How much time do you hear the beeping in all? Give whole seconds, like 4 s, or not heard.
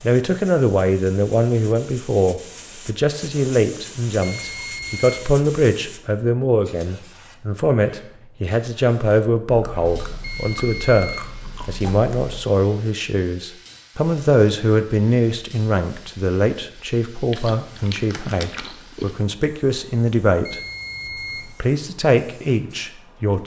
3 s.